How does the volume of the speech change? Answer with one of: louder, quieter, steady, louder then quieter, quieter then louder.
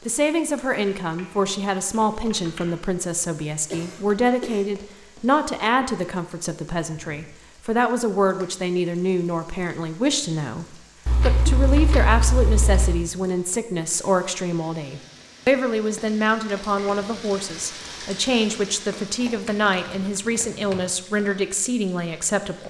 steady.